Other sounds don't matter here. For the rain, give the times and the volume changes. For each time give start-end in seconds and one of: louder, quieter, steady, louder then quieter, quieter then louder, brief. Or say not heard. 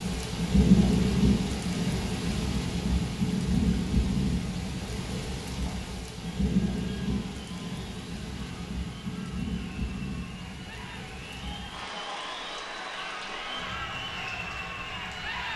0.0-15.5 quieter.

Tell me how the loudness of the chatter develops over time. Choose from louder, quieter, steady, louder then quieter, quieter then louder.
louder.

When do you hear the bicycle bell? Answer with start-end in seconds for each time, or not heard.
not heard.